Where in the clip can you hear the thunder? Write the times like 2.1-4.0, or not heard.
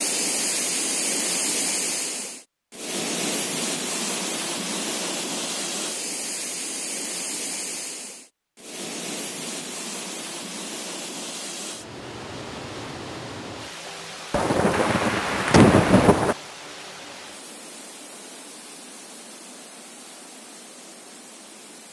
14.3-16.4.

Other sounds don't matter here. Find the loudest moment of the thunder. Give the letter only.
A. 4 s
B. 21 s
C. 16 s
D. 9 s
C.